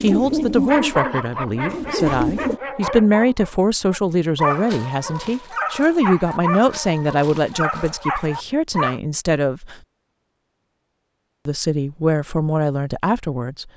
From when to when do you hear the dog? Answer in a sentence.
You can hear the dog from 0.7 to 9.0 s.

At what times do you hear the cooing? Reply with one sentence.
The cooing can be heard from 0.0 to 2.6 s.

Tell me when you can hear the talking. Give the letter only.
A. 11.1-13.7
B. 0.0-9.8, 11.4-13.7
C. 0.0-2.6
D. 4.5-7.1
B.